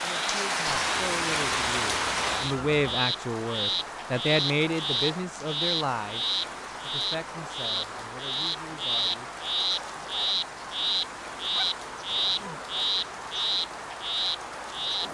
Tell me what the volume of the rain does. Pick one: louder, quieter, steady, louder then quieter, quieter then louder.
quieter.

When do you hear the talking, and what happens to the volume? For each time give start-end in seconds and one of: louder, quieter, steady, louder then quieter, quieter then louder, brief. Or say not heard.
0.0-9.3 louder then quieter.